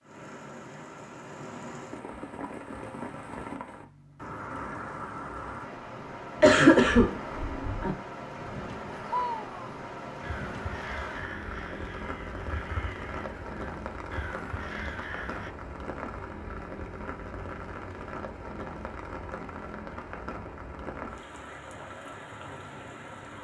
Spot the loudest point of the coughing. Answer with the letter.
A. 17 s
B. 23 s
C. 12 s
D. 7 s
D.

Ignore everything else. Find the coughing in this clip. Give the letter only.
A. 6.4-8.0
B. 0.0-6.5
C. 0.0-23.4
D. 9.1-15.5
A.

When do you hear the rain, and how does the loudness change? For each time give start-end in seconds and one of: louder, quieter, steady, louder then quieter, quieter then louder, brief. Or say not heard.
0.0-23.4 steady.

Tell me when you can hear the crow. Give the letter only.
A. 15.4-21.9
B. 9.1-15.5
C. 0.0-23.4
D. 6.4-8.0
B.